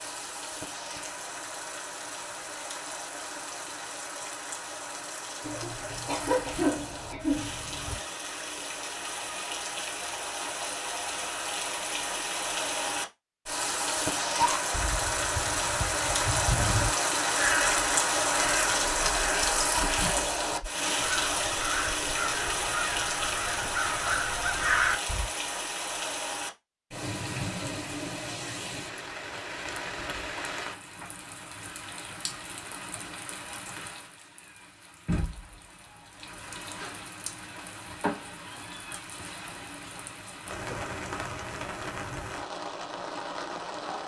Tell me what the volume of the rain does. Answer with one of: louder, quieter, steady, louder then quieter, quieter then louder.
louder then quieter.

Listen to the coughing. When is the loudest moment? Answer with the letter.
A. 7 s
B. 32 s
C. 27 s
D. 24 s
A.